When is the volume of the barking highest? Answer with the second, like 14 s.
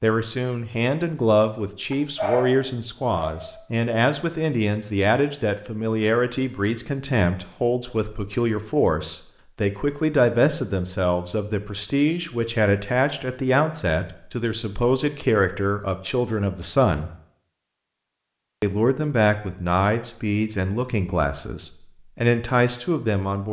2 s.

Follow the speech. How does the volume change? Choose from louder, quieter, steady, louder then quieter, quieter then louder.
steady.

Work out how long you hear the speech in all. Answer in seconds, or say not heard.
22 s.